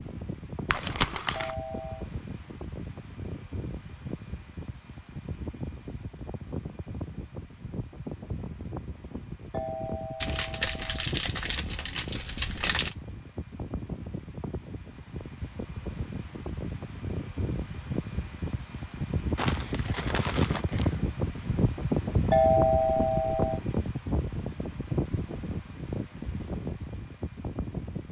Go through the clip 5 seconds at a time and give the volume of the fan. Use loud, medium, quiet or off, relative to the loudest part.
medium, medium, medium, medium, loud, medium.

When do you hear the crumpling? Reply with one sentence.
The crumpling can be heard from 0.7 to 1.6 s, from 10.2 to 12.9 s and from 19.4 to 21.0 s.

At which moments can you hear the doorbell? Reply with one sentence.
You can hear the doorbell from 1.4 to 2.0 s, from 9.5 to 11.1 s and from 22.3 to 23.6 s.